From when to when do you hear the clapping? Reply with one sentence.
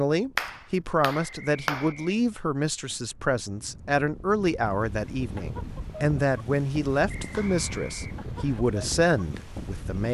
You can hear the clapping from 0.3 to 1.9 s and from 7.3 to 8.2 s.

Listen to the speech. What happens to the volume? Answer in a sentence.
The loudness of the speech stays about the same.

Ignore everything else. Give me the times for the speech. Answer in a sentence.
The speech can be heard from 0.0 to 10.0 s.